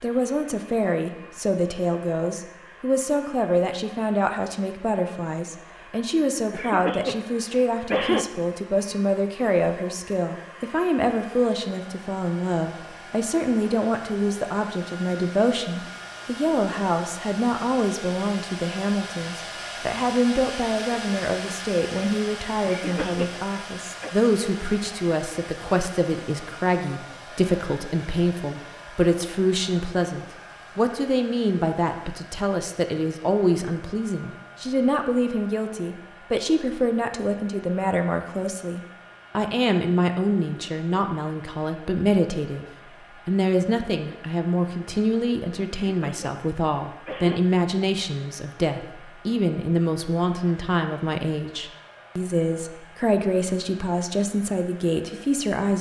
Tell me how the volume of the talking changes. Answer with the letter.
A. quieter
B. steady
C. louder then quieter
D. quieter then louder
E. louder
B.